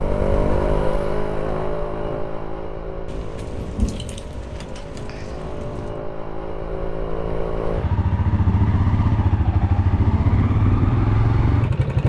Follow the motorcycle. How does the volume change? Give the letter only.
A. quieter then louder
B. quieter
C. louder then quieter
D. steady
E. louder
A.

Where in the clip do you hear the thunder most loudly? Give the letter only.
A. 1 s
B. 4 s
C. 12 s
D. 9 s
B.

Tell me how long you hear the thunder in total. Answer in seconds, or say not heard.
3 s.